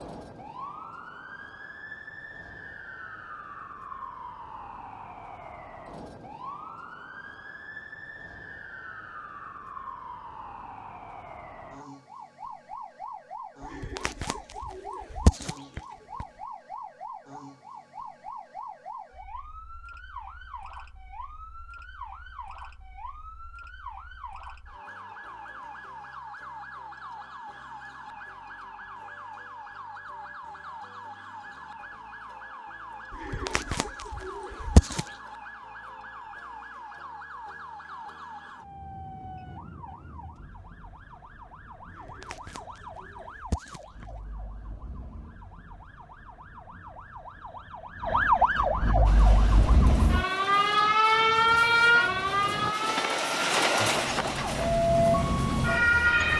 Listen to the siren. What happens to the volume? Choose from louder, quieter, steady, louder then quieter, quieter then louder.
louder.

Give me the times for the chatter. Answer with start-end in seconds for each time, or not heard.
not heard.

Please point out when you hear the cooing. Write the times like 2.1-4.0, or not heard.
13.6-16.2, 33.1-35.1, 41.9-44.3.